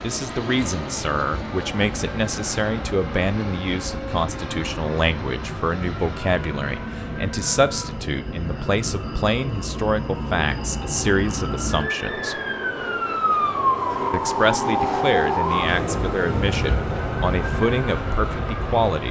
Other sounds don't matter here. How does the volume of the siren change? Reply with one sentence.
The volume of the siren goes up.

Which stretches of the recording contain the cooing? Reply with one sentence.
You can't hear the cooing here.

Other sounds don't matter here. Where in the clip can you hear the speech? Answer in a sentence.
The speech can be heard from 0.0 to 12.3 s and from 14.1 to 19.0 s.